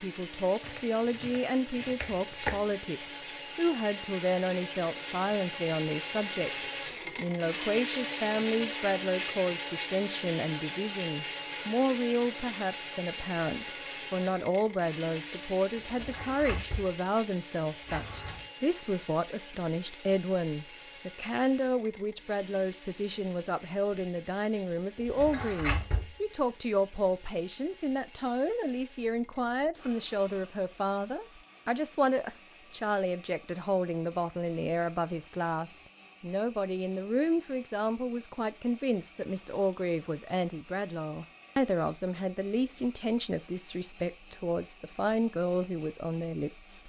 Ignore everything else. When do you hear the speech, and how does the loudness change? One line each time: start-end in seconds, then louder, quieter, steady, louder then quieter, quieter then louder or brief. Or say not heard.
0.0-46.8 steady.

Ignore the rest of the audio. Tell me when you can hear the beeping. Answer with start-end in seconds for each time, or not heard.
not heard.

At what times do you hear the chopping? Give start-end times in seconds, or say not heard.
0.6-2.8.